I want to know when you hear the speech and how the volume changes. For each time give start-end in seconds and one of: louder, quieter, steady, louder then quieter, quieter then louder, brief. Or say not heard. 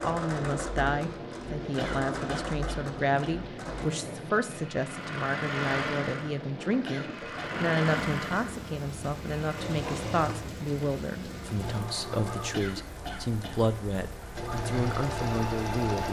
0.0-16.0 steady.